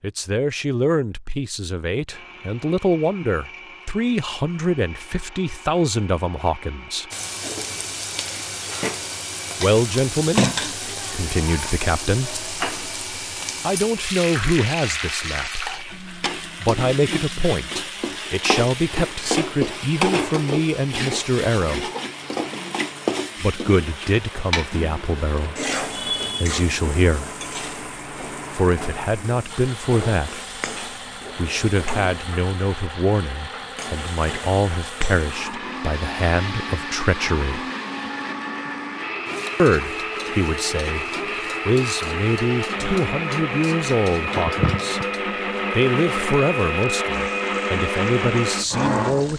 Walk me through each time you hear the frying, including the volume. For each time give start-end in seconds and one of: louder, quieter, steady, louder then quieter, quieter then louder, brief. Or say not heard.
7.1-49.3 quieter.